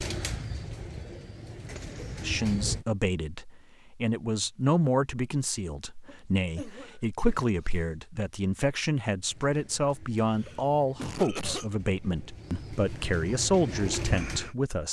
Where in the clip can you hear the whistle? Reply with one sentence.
You can't hear the whistle here.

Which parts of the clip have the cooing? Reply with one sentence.
The cooing can be heard from 0.0 to 2.9 s and from 9.2 to 14.6 s.